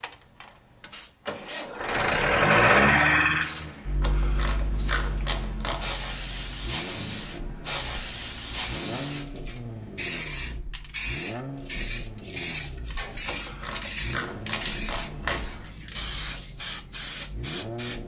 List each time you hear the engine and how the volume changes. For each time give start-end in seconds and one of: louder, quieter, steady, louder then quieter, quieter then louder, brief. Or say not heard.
0.0-18.0 quieter.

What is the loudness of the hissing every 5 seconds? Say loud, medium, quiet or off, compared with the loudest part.
quiet, loud, loud, loud.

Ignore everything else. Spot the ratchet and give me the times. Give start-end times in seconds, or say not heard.
4.0-6.0, 13.2-15.7.